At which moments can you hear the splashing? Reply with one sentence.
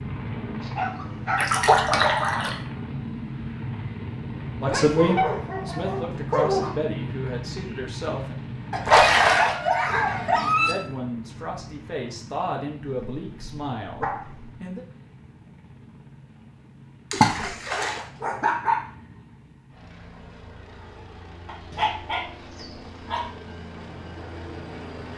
The splashing can be heard from 1.4 to 2.5 s, from 8.8 to 9.6 s and from 17.1 to 18.1 s.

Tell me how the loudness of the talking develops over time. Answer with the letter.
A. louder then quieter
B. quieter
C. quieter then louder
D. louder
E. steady
B.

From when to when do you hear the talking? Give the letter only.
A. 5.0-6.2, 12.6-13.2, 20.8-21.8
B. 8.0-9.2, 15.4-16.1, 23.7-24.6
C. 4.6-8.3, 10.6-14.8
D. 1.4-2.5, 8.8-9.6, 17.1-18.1
C.